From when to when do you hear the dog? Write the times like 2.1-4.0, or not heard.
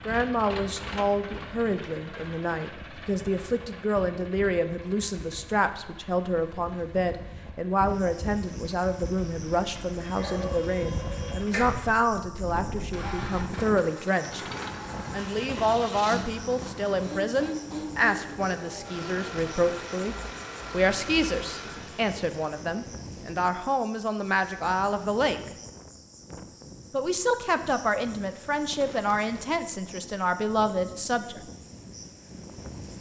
10.2-11.8.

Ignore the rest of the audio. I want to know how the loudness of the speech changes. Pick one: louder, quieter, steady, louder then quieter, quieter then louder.
steady.